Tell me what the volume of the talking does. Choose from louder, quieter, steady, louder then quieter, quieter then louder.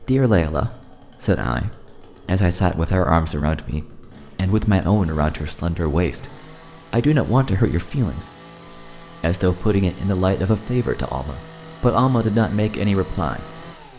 steady.